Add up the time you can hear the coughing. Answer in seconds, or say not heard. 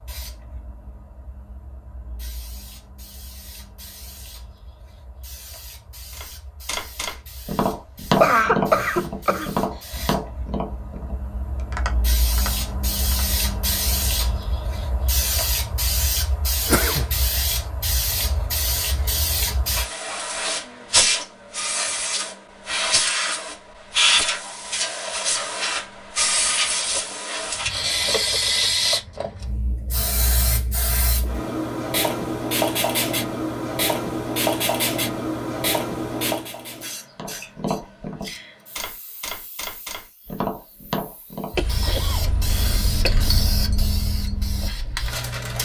4 s.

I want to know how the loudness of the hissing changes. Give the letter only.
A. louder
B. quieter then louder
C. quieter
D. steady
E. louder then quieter
E.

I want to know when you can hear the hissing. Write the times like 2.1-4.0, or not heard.
0.0-45.5.